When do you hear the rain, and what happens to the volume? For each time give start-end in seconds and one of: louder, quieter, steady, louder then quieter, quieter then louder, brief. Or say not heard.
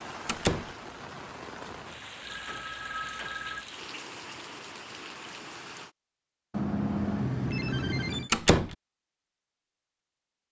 0.0-6.0 steady.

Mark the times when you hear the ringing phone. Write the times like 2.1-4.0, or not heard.
2.2-3.6, 6.5-8.3.